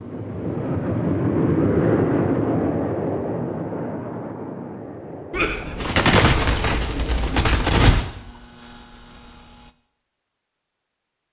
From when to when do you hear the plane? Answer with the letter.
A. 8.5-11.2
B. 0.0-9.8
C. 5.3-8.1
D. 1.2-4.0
B.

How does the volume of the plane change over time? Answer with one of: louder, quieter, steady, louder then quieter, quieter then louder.
quieter.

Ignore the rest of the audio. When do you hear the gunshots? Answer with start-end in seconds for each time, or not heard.
5.3-8.1.